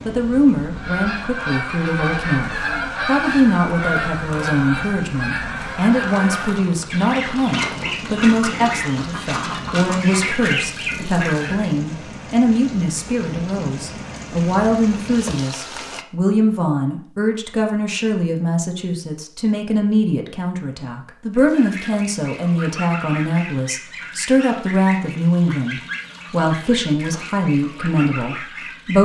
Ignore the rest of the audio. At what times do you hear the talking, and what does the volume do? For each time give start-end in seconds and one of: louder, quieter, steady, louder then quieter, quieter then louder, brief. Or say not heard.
0.1-29.0 steady.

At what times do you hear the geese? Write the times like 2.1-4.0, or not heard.
0.6-11.7, 21.3-29.0.